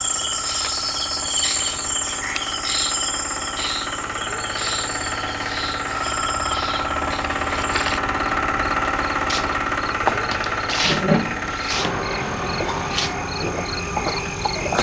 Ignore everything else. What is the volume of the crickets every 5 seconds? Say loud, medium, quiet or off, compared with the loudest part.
loud, medium, loud.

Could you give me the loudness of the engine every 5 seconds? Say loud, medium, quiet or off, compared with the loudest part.
medium, loud, loud.